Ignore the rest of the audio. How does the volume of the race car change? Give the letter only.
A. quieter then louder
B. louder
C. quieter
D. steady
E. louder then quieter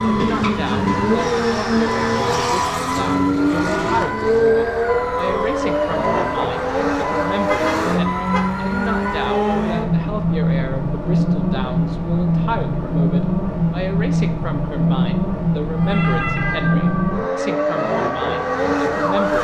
D.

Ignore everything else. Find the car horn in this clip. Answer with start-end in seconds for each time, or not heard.
7.5-8.6.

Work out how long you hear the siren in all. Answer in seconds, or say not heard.
13 s.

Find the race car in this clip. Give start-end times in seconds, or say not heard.
0.0-19.3.